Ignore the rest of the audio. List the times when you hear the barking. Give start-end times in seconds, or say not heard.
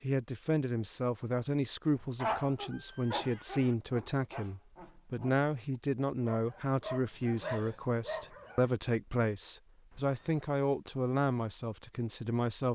2.1-8.7.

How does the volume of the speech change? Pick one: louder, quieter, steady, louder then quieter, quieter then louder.
steady.